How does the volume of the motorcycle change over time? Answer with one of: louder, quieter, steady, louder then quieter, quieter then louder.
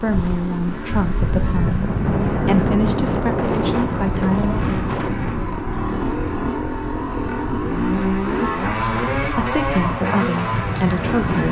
louder.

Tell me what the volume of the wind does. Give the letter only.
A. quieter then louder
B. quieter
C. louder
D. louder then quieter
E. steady
A.